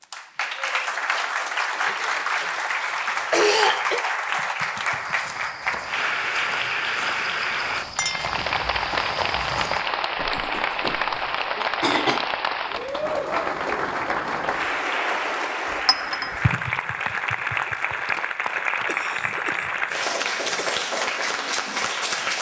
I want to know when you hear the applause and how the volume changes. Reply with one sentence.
The applause can be heard from 0.0 to 22.3 s, at a steady volume.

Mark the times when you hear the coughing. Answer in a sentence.
The coughing can be heard from 1.9 to 4.0 s, from 10.3 to 12.2 s and from 18.9 to 20.9 s.